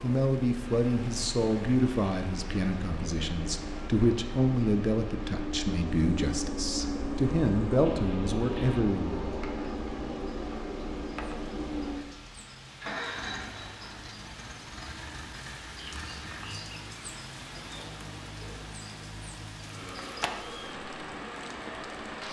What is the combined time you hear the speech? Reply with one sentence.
The speech can be heard for 9 seconds in total.